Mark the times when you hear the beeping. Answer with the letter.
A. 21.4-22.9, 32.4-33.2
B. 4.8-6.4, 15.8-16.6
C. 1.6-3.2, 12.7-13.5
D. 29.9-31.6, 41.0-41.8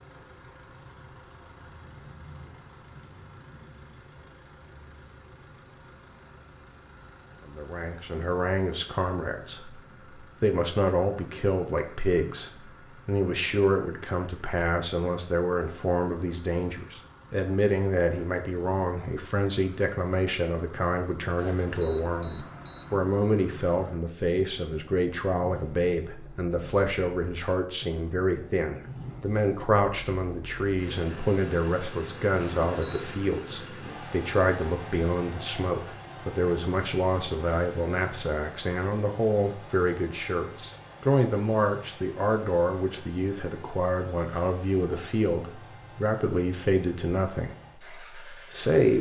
A.